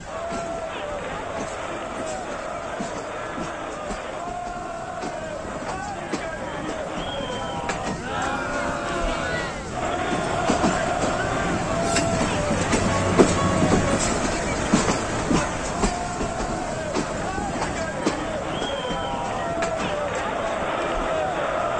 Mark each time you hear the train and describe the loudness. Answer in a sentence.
You can hear the train from 0.0 to 21.7 s, getting louder then quieter.